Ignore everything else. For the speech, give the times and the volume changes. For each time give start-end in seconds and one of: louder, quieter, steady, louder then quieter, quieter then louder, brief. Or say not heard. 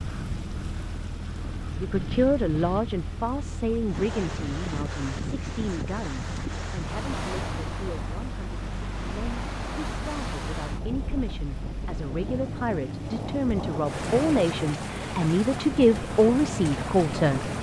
1.7-17.5 quieter then louder.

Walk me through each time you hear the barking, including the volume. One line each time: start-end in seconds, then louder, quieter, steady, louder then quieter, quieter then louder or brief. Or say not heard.
not heard.